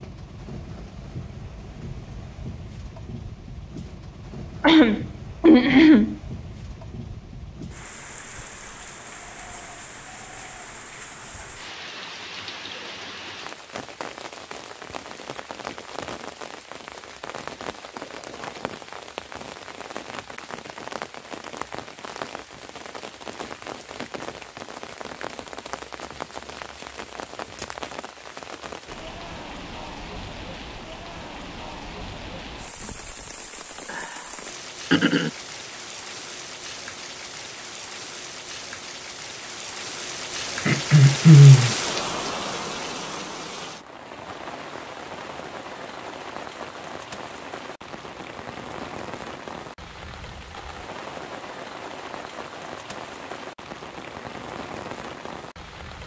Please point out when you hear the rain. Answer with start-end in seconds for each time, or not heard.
0.0-56.0.